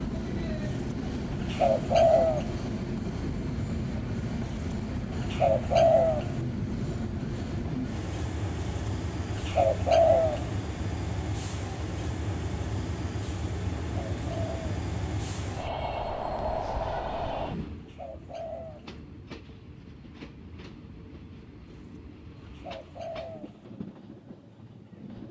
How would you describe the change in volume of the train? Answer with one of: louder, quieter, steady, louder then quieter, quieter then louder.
quieter.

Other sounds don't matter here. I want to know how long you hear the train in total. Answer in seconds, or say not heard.
25 s.